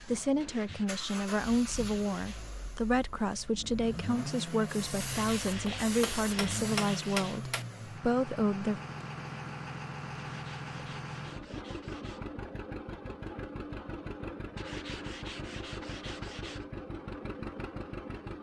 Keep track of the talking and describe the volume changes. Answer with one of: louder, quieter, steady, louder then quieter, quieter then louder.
steady.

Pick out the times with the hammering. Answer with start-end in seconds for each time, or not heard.
5.7-7.7.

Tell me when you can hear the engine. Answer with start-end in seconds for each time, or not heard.
0.0-18.3.